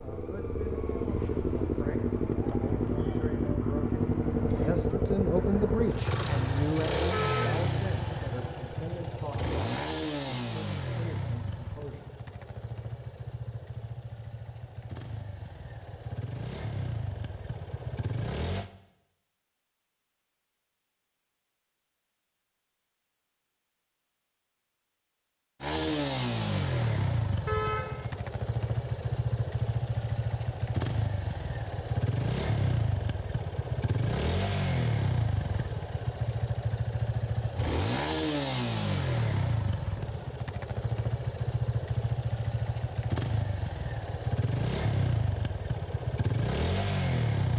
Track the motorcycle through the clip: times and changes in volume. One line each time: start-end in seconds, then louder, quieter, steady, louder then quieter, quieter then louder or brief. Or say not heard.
0.0-18.7 quieter
25.6-47.5 steady.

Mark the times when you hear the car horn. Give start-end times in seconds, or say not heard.
7.1-7.7, 27.4-28.1.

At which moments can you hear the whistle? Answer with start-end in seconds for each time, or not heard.
not heard.